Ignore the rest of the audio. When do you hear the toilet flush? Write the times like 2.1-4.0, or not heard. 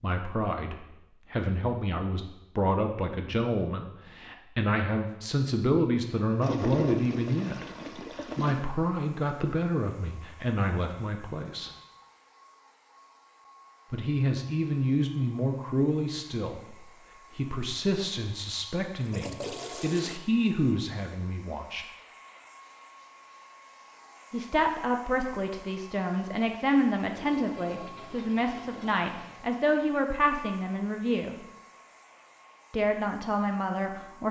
6.4-8.7, 18.9-20.2, 27.1-29.6.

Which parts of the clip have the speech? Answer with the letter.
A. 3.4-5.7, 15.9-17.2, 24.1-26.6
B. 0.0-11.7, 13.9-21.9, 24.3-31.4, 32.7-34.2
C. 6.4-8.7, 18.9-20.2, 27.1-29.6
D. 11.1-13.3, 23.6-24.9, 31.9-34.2
B.